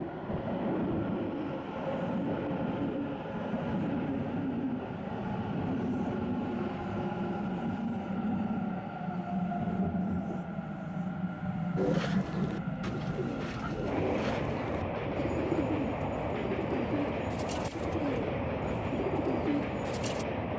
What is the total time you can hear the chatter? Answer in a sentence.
The chatter can't be heard in this clip.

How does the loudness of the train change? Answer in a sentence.
The volume of the train stays about the same.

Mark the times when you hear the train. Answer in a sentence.
You can hear the train from 0.0 to 20.5 s.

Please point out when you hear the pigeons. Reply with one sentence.
The pigeons can be heard from 11.8 to 20.2 s.